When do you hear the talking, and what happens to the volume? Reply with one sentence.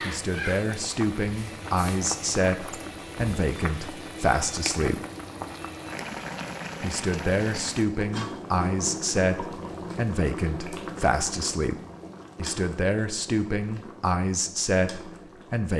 You can hear the talking from 0.1 to 5.0 s, at a steady volume; and from 6.8 to 15.7 s, at a steady volume.